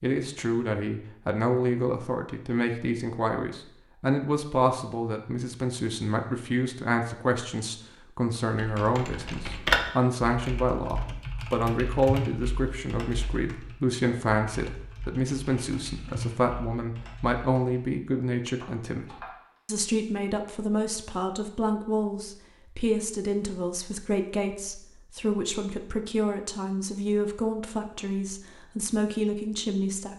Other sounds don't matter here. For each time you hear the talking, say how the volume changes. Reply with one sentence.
The talking can be heard from 0.0 to 30.1 s, at a steady volume.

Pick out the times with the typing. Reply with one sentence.
You can hear the typing from 8.6 to 19.4 s.